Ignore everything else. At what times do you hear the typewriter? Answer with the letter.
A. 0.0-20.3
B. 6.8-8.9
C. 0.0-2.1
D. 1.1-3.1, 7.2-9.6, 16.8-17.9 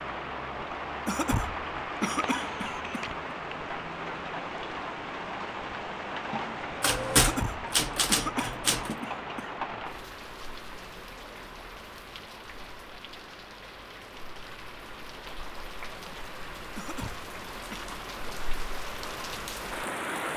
B.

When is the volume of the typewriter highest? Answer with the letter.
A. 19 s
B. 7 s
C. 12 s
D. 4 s
B.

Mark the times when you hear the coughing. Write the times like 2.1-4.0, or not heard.
1.1-3.1, 7.2-9.6, 16.8-17.9.